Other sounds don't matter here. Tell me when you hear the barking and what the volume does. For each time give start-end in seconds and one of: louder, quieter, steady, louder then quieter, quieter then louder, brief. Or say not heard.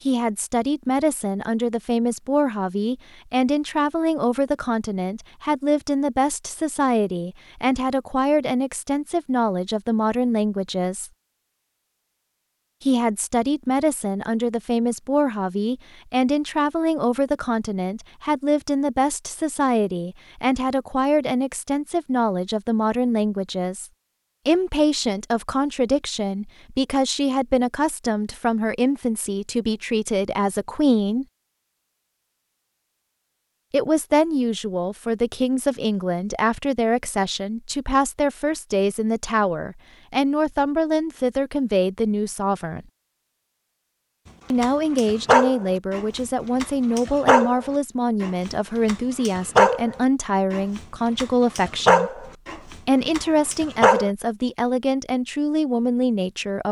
44.6-52.5 quieter then louder
53.1-54.1 brief.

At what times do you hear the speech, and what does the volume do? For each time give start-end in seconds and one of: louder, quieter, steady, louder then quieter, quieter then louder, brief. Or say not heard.
0.1-11.1 steady
12.8-31.2 steady
33.7-42.9 steady
44.5-56.6 steady.